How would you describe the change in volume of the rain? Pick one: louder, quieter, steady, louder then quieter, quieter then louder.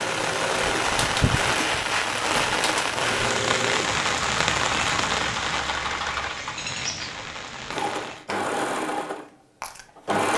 quieter.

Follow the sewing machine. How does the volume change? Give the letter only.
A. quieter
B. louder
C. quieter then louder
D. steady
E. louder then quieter
D.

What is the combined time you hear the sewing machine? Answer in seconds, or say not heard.
10 s.